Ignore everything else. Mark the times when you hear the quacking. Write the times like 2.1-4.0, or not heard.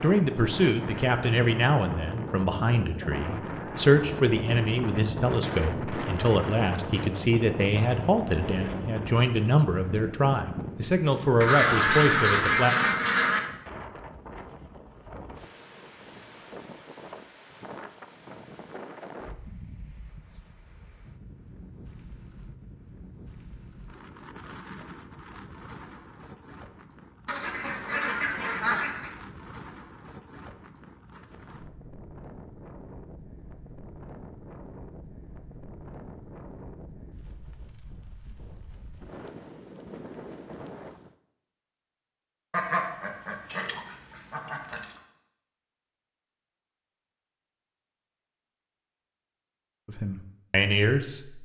11.4-13.4, 27.2-29.1, 42.5-45.0.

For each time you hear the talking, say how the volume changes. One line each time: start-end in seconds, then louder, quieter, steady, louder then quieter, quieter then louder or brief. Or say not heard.
0.0-12.8 steady
49.9-51.4 brief.